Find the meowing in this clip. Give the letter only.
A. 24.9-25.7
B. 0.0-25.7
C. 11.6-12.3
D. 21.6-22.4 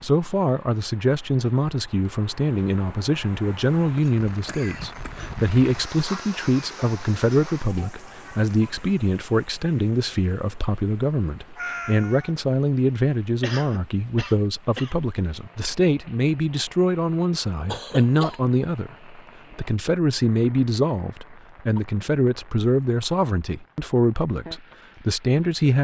C.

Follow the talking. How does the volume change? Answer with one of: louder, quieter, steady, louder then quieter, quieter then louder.
steady.